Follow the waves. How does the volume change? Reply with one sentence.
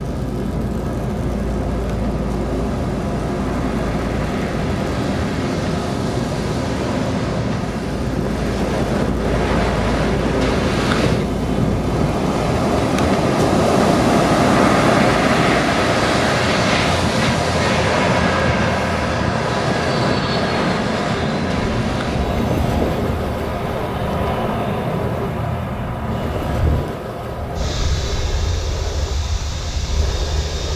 The volume of the waves goes up, then down.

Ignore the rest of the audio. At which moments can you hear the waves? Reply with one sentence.
You can hear the waves from 0.0 to 30.7 s.